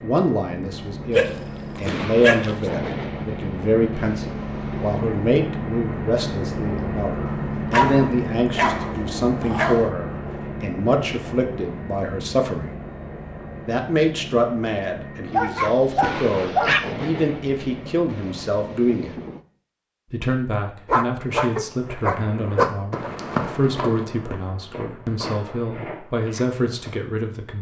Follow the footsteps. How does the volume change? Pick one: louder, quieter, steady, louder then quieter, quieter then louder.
louder then quieter.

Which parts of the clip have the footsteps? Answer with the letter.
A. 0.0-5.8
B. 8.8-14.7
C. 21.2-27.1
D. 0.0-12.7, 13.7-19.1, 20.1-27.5
C.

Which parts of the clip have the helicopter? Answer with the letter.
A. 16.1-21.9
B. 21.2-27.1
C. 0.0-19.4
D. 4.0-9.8
C.